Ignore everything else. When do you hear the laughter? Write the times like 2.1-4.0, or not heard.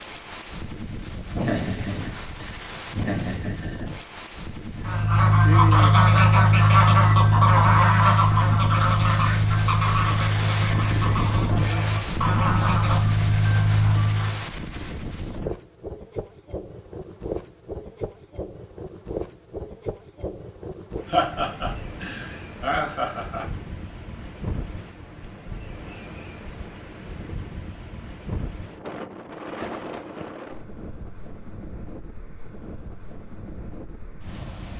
1.3-3.9, 21.1-23.4.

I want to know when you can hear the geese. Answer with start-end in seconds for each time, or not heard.
4.8-14.4.